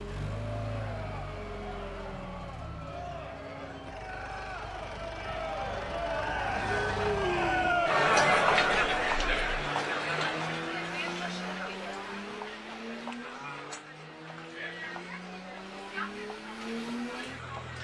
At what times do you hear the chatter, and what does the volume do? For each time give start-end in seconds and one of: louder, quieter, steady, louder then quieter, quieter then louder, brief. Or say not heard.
0.2-17.8 louder then quieter.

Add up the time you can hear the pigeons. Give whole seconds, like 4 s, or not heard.
not heard.